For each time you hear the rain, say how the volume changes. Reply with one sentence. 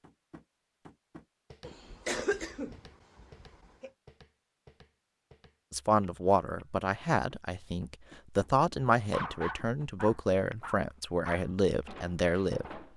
The rain can't be heard in this clip.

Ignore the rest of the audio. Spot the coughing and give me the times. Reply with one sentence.
You can hear the coughing from 1.6 to 3.9 s.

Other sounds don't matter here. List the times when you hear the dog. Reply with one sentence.
You can hear the dog from 9.0 to 12.9 s.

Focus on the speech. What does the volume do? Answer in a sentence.
The volume of the speech stays about the same.